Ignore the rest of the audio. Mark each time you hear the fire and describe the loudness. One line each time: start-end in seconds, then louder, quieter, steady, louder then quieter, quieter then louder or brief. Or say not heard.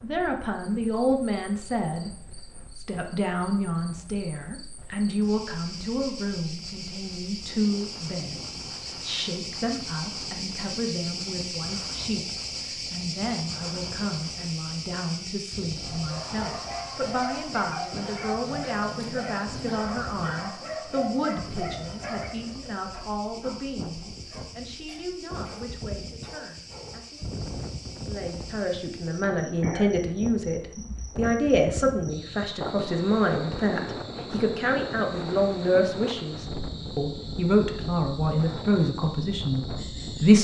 not heard.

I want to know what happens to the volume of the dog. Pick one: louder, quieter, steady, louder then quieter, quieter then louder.
quieter.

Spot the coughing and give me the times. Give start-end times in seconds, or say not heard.
not heard.